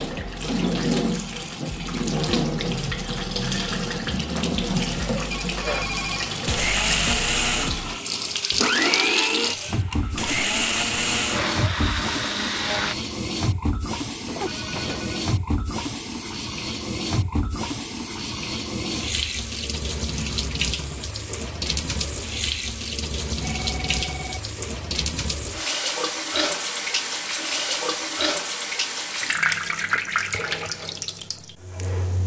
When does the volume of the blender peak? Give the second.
9 s.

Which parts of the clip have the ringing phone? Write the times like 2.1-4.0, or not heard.
5.3-6.3, 14.2-15.3, 23.4-24.5.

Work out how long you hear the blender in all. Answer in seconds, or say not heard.
7 s.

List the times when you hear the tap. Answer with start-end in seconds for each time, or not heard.
0.0-32.2.